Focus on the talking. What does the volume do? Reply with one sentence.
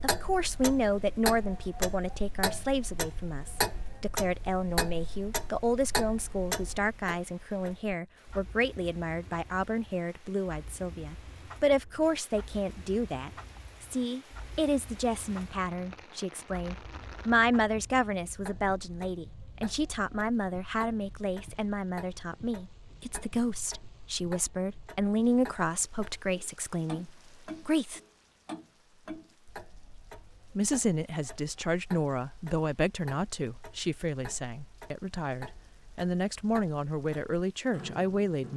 The loudness of the talking stays about the same.